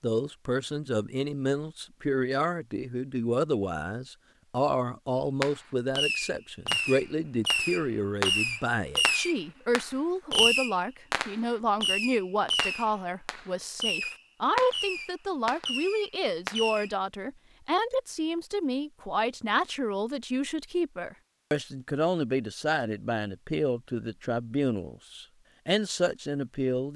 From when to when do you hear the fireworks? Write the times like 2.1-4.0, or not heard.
5.4-16.9.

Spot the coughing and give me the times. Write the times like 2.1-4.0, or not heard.
not heard.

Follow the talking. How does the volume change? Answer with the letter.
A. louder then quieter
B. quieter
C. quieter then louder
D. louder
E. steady
E.